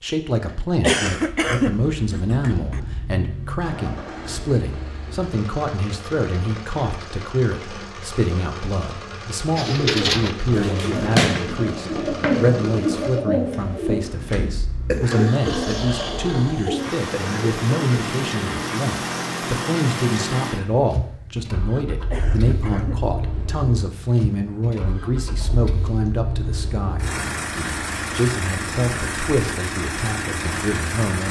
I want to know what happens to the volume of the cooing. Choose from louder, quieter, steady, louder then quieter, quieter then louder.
quieter.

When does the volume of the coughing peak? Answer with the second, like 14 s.
1 s.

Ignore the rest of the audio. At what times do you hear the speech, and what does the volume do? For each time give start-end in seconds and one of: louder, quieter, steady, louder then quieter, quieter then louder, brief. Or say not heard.
0.0-31.2 steady.